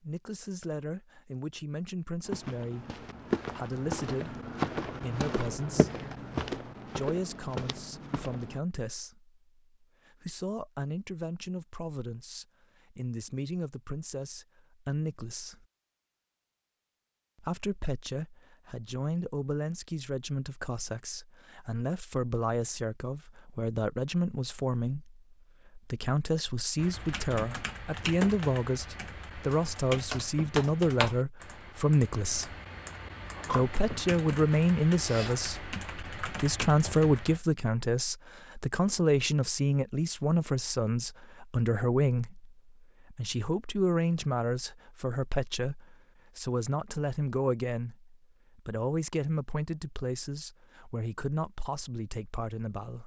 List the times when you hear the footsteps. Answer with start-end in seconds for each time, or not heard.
2.2-8.6.